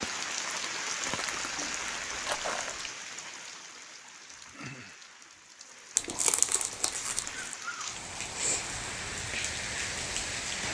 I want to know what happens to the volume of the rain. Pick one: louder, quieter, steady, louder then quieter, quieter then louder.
quieter then louder.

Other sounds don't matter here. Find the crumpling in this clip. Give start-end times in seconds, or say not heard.
1.2-2.9, 6.0-7.5.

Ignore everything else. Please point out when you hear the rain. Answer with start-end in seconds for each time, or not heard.
0.0-10.6.